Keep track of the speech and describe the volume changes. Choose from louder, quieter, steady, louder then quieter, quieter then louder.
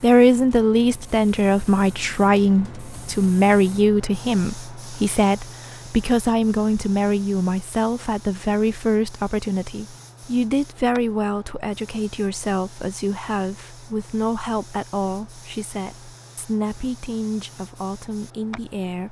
quieter.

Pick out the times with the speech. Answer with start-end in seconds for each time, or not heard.
0.0-19.0.